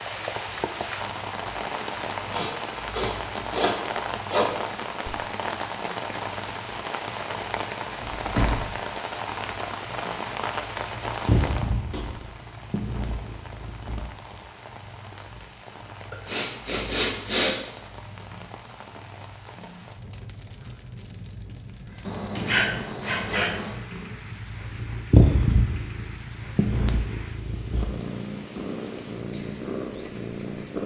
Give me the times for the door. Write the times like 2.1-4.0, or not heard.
8.0-8.7, 11.9-12.3, 21.4-22.6.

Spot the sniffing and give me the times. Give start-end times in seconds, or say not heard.
2.3-4.7, 16.1-17.6, 22.1-23.8.